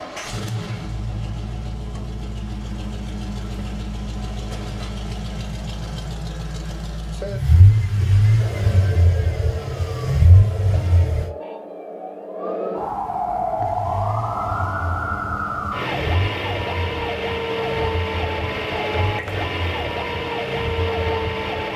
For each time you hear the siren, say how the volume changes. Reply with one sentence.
You can hear the siren from 8.3 to 21.7 s, getting louder.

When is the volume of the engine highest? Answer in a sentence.
The volume of the engine peaks at 8 seconds.